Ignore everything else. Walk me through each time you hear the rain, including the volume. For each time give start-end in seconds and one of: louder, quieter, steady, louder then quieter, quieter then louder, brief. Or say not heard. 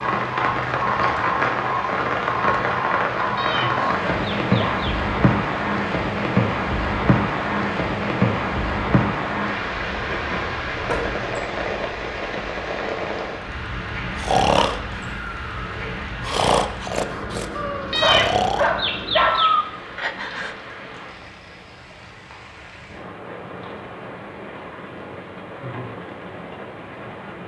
0.0-27.4 quieter.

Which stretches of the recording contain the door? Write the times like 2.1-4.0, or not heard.
10.8-11.5, 14.6-15.2.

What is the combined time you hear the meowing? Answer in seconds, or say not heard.
4 s.